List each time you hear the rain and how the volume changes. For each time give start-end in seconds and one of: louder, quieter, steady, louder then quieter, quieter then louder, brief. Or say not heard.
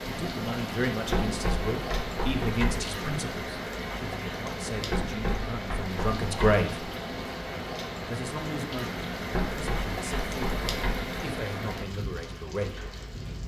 0.0-13.4 steady.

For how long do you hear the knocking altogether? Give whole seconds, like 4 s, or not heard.
5 s.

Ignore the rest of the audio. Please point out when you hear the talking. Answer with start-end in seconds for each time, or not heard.
0.1-6.9, 8.1-12.9.